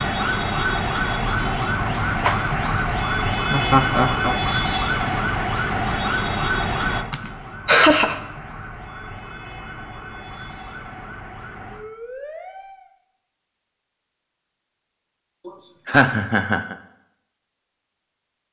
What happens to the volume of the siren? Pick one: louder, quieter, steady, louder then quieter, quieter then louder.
quieter.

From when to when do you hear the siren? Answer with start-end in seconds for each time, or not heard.
0.0-12.9.